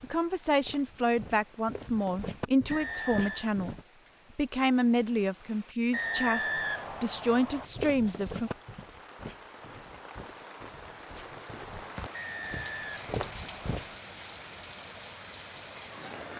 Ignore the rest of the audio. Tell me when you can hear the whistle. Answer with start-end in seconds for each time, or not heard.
2.7-3.5, 5.9-7.7, 12.1-13.8.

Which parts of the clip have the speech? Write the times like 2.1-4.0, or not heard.
0.0-8.5.